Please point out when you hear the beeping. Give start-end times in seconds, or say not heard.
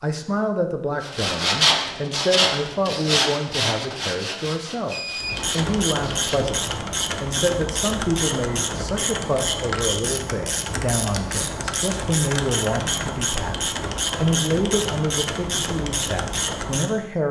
4.9-5.5.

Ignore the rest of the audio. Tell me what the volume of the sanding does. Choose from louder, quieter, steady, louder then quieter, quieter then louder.
quieter.